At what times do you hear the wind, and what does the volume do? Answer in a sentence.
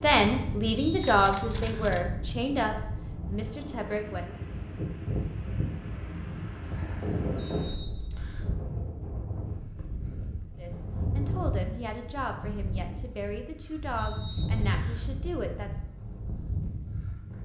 You can hear the wind from 0.0 to 17.4 s, at a steady volume.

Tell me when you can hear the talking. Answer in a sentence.
The talking can be heard from 0.0 to 4.3 s and from 10.6 to 15.7 s.